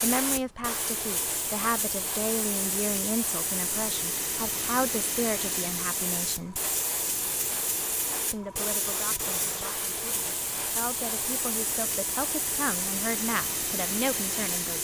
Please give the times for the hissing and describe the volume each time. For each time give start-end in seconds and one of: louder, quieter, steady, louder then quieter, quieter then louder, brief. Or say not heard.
0.0-14.8 steady.